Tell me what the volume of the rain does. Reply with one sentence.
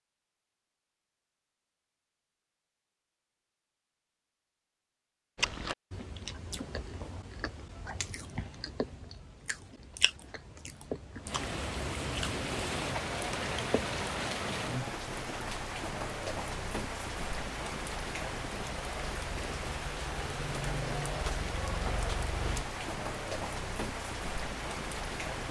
The loudness of the rain stays about the same.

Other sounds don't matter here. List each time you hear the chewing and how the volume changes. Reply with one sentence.
You can hear the chewing from 5.3 to 14.0 s, at a steady volume.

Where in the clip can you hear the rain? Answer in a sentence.
You can hear the rain from 11.2 to 25.4 s.